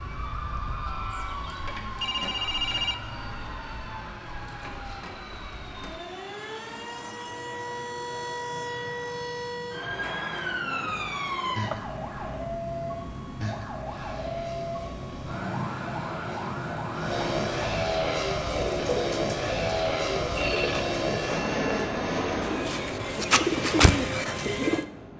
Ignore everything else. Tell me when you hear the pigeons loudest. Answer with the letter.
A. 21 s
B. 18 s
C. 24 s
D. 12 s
C.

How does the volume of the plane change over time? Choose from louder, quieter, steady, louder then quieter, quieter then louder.
louder.